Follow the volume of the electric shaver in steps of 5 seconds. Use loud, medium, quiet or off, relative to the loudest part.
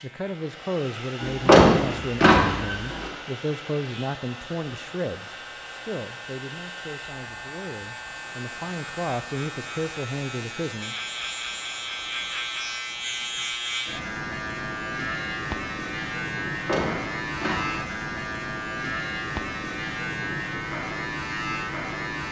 quiet, medium, loud, loud, loud.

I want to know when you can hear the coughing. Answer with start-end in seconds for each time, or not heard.
not heard.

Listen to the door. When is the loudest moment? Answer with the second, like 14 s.
2 s.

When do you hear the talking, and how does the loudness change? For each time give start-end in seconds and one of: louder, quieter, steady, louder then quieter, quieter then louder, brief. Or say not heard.
0.0-10.9 quieter then louder.